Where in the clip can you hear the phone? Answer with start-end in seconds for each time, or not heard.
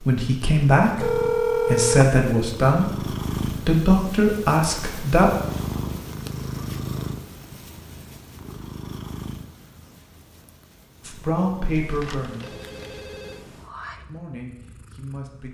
1.0-2.0, 11.8-13.4.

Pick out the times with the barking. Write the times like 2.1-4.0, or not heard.
not heard.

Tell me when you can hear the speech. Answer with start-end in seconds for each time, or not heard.
0.0-5.3, 11.1-12.6, 14.1-15.4.